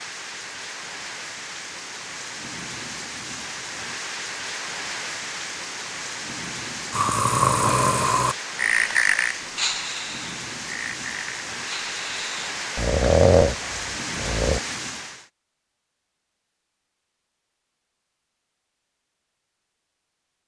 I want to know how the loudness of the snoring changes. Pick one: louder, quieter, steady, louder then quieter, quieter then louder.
quieter then louder.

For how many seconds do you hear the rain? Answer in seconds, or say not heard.
15 s.